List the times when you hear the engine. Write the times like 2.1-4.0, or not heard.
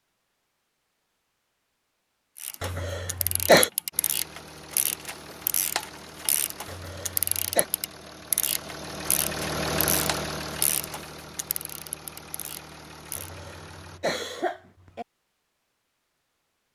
3.9-14.0.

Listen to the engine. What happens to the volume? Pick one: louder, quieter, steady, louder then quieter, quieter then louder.
louder then quieter.